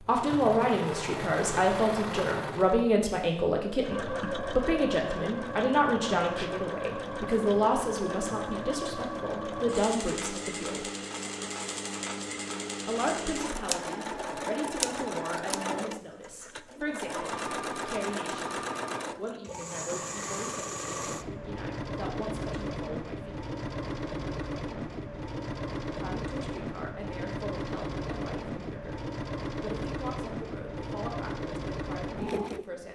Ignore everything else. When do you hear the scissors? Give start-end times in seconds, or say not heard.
13.5-15.6.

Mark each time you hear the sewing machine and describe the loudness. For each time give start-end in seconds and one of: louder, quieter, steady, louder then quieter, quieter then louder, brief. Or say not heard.
0.0-32.9 steady.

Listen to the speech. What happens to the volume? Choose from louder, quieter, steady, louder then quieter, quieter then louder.
quieter.